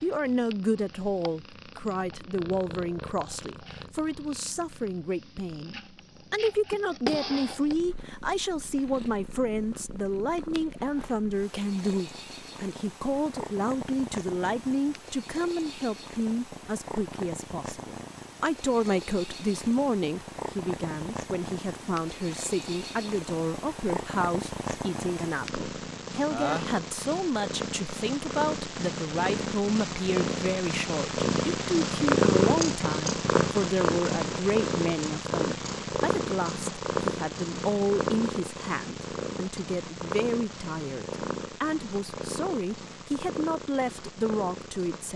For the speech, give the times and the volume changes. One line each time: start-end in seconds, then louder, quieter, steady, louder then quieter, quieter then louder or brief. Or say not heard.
0.0-45.1 steady.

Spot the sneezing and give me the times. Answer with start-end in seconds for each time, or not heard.
26.3-26.8.